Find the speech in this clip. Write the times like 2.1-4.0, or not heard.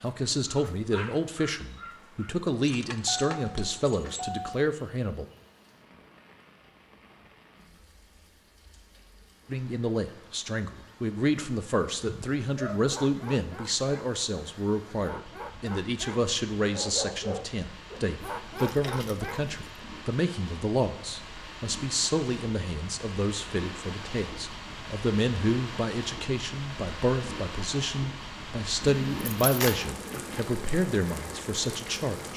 0.0-5.2, 9.5-32.3.